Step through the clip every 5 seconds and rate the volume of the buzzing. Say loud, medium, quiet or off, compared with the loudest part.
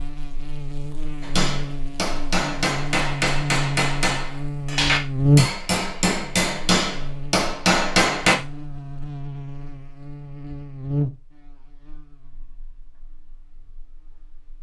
medium, loud, medium.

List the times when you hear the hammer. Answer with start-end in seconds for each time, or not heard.
1.2-8.3.